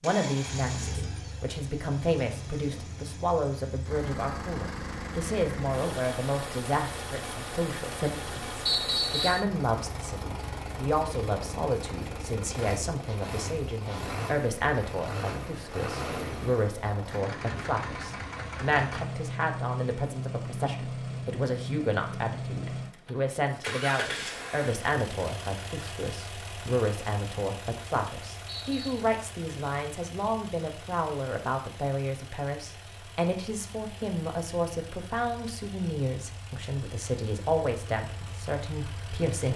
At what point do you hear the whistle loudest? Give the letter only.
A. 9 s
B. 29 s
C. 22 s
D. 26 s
A.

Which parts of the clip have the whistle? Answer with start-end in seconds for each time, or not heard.
8.7-9.4, 28.4-29.0.